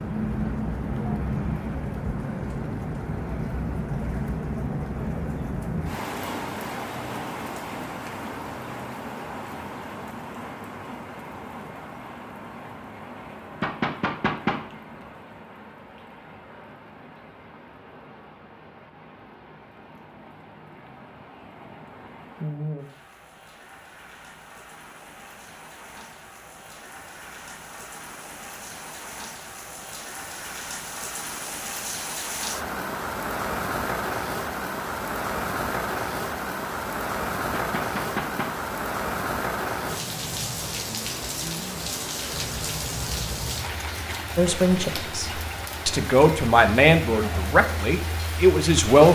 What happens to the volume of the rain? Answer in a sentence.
The volume of the rain goes down, then up.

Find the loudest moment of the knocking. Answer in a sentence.
The volume of the knocking peaks at 14 seconds.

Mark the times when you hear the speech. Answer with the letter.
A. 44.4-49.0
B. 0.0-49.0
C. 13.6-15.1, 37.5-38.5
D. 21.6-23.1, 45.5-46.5
A.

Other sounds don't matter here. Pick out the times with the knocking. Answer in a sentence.
You can hear the knocking from 13.6 to 15.1 s and from 37.5 to 38.5 s.